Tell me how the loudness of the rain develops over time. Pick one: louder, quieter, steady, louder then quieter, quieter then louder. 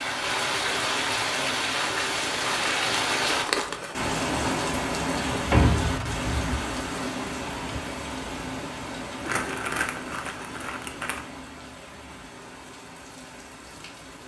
quieter.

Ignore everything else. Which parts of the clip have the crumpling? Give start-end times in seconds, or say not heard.
2.2-4.0, 9.2-11.2.